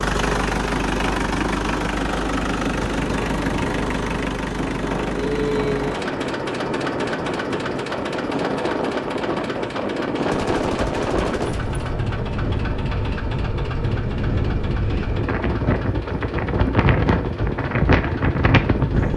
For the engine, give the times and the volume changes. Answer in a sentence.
You can hear the engine from 0.0 to 19.1 s, getting quieter.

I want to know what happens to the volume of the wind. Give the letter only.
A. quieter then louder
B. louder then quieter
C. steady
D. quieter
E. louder
E.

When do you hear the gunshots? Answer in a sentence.
The gunshots can be heard from 10.3 to 11.8 s.